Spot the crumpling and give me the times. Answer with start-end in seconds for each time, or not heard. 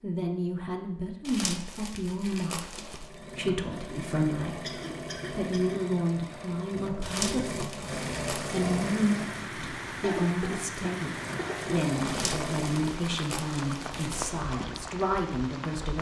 1.2-3.1, 7.0-8.6, 12.1-14.4.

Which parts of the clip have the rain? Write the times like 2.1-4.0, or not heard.
7.8-15.9.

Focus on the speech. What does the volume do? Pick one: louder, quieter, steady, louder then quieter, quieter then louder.
steady.